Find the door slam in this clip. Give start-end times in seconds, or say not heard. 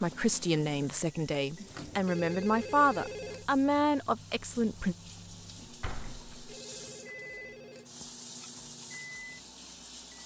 5.5-6.5.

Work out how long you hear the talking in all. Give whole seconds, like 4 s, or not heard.
5 s.